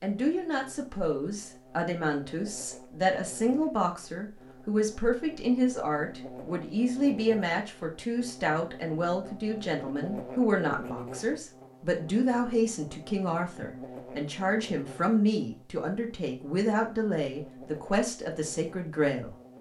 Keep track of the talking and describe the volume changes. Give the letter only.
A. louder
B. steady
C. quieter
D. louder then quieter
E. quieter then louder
B.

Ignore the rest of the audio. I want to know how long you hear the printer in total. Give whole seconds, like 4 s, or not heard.
not heard.